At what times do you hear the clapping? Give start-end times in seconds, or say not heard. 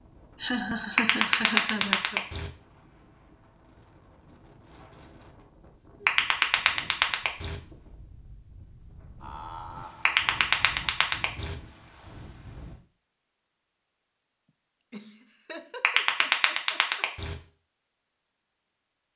0.9-2.5, 6.0-7.5, 10.1-11.6, 15.8-17.4.